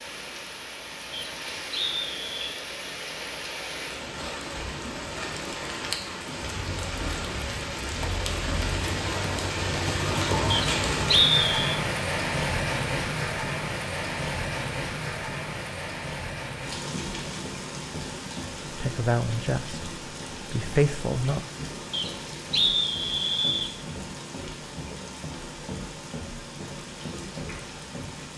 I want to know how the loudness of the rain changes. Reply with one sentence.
The volume of the rain goes up, then down.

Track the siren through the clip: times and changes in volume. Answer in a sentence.
You can't hear the siren here.